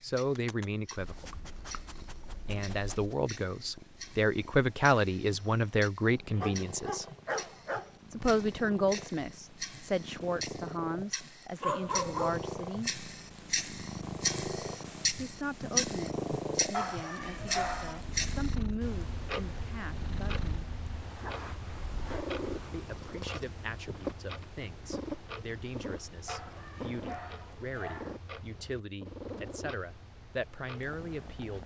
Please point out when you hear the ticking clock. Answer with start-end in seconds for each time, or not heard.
0.0-31.6.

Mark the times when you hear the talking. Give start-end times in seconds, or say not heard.
0.0-1.4, 2.5-7.0, 8.1-12.9, 15.2-20.6, 22.7-31.6.